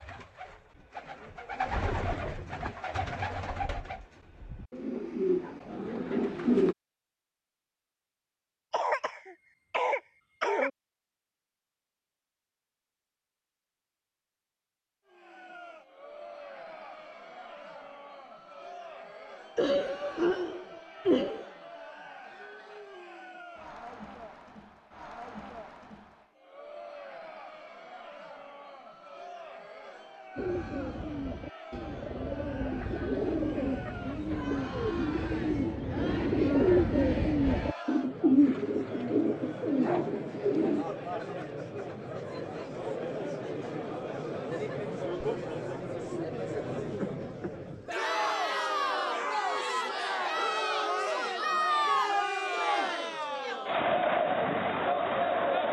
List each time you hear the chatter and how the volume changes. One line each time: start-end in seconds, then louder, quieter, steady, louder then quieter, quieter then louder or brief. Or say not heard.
15.1-55.6 louder.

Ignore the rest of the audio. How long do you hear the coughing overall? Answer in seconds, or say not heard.
5 s.